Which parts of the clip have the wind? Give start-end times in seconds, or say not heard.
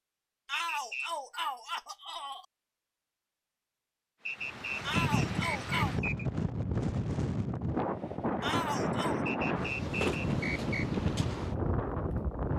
4.3-12.5.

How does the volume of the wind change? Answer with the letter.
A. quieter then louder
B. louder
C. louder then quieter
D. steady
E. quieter
D.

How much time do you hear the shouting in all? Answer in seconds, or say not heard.
4 s.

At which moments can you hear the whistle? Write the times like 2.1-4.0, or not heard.
0.5-1.1, 4.2-6.2, 9.2-10.8.